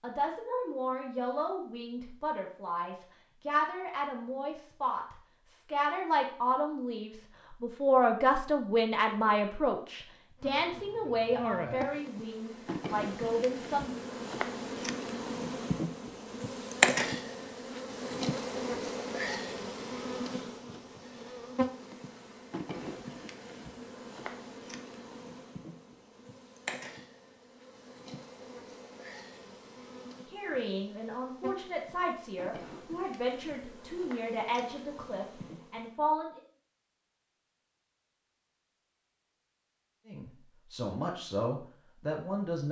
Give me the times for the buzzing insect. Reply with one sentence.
The buzzing insect can be heard from 10.4 to 35.9 s.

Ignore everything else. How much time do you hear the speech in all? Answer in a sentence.
The speech can be heard for 23 seconds in total.